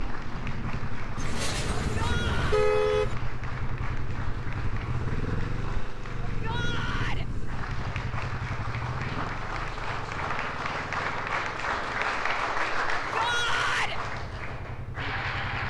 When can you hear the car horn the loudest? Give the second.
3 s.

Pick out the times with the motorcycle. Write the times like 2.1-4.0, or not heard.
0.0-15.6.